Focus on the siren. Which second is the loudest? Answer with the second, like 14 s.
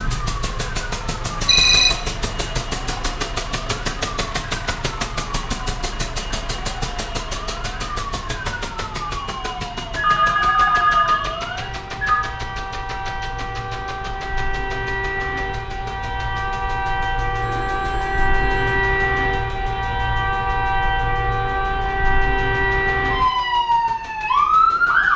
25 s.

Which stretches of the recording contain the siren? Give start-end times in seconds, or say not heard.
0.0-25.1.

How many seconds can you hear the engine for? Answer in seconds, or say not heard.
25 s.